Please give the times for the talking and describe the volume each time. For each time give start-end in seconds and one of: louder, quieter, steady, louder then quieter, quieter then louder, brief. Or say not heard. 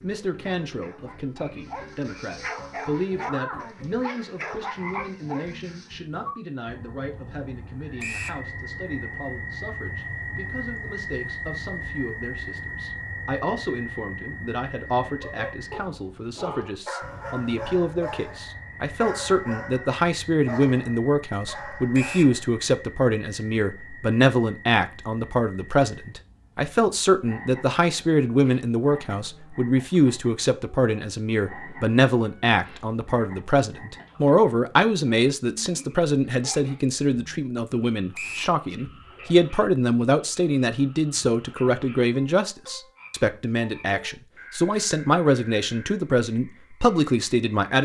0.0-47.8 louder.